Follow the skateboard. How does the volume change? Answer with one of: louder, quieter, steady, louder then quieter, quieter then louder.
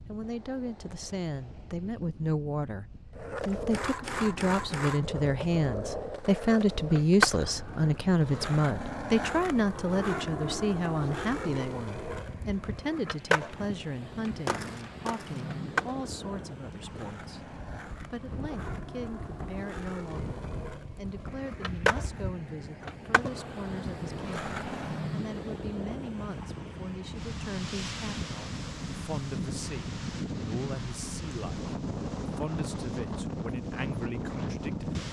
quieter then louder.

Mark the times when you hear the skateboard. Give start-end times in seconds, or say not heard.
3.1-25.1.